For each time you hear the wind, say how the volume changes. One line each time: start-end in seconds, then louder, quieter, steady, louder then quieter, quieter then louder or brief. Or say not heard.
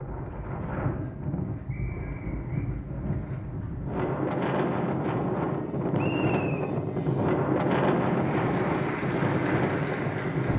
0.0-10.5 louder.